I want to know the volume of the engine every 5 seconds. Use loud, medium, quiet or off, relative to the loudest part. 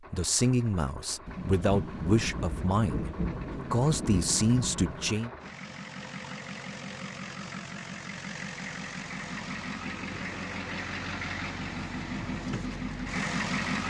quiet, medium, loud.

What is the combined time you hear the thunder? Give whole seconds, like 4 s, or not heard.
4 s.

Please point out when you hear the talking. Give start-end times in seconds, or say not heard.
0.1-3.1, 3.7-5.3.